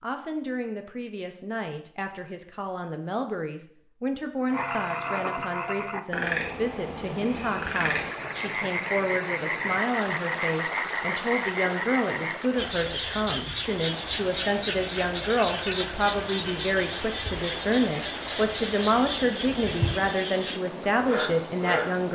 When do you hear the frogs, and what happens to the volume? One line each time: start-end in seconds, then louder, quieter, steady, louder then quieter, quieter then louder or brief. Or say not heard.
4.5-22.1 steady.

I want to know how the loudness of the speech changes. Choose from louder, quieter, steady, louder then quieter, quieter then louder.
louder.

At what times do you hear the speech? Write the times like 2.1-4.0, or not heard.
0.0-22.1.